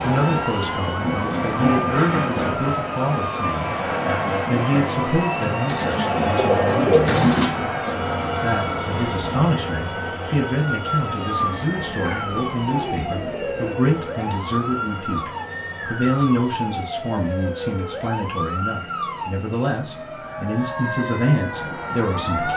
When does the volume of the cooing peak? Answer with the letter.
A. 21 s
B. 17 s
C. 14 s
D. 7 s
D.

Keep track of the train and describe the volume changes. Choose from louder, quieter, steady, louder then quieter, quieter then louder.
quieter.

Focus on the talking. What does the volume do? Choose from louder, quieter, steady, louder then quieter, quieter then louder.
steady.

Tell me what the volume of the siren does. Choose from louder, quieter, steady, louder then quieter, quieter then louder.
steady.